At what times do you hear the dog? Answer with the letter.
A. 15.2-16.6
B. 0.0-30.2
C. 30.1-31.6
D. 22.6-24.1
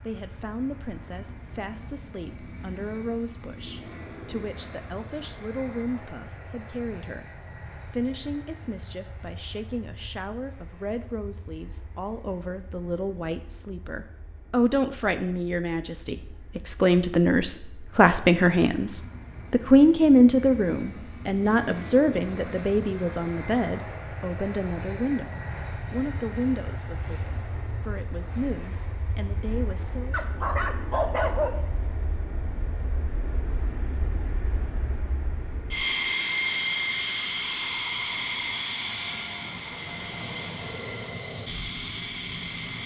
C.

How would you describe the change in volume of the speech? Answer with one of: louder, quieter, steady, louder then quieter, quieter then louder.
louder then quieter.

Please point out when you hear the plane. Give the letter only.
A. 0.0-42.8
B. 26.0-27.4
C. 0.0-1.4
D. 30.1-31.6
A.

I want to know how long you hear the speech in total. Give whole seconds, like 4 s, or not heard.
30 s.